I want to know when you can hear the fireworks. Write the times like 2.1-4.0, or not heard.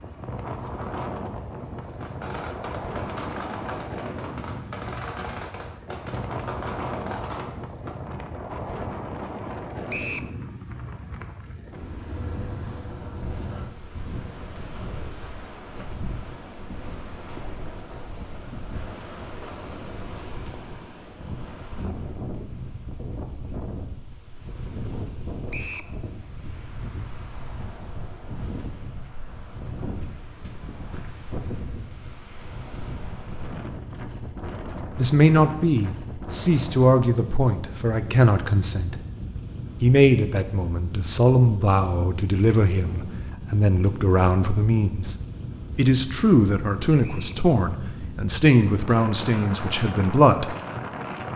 1.8-8.2.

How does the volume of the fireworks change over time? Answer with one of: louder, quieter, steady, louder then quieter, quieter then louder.
steady.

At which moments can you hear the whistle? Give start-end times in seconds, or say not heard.
9.9-10.3, 25.5-25.9, 47.0-47.5.